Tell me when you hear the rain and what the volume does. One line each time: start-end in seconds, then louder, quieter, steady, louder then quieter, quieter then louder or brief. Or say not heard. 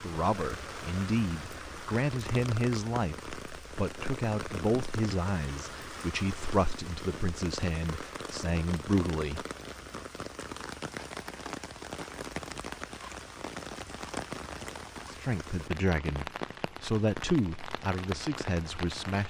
0.0-19.2 steady.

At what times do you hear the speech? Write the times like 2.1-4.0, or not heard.
0.0-9.4, 15.1-19.2.